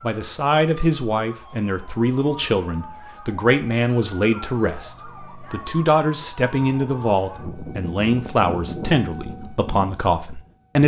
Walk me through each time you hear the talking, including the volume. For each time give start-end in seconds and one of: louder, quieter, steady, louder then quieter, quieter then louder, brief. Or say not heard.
0.0-10.8 steady.